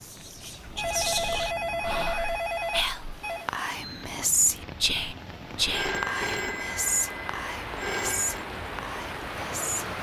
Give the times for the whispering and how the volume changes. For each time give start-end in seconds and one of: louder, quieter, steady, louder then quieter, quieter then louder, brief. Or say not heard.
0.0-9.9 louder then quieter.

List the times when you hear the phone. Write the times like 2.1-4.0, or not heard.
0.8-3.5, 5.7-8.4.